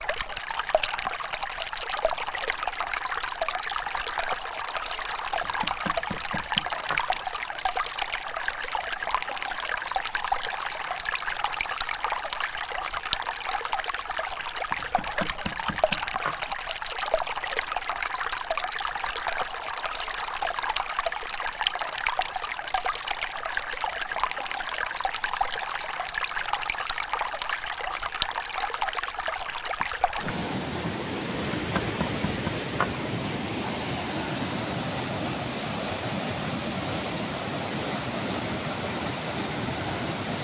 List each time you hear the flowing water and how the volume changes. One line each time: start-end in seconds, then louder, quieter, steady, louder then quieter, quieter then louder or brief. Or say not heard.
0.0-40.3 steady.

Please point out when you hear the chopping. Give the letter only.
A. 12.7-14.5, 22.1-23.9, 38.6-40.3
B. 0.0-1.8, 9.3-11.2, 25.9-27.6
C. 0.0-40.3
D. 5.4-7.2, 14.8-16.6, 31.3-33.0
D.